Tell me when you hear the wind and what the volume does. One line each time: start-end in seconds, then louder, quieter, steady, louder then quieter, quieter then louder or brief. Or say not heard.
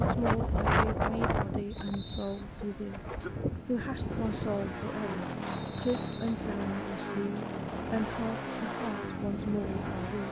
0.0-9.9 quieter.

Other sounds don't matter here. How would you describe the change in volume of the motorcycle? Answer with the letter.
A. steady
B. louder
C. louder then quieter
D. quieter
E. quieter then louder
B.